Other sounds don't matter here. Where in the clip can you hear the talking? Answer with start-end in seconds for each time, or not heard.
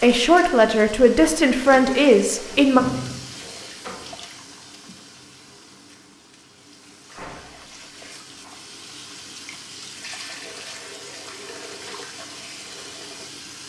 0.0-2.8.